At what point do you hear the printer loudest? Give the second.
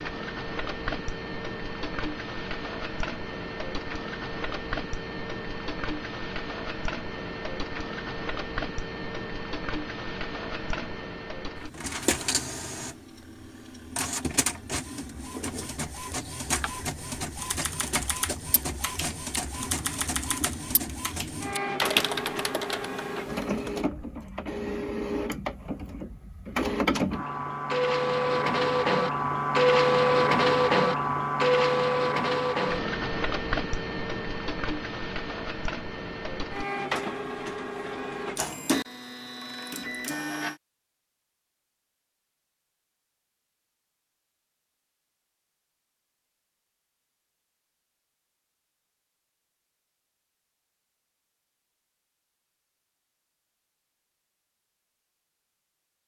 30 s.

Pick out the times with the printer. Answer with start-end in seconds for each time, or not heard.
0.0-40.6.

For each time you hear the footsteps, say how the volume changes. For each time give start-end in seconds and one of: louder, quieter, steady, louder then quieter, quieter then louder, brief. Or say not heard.
not heard.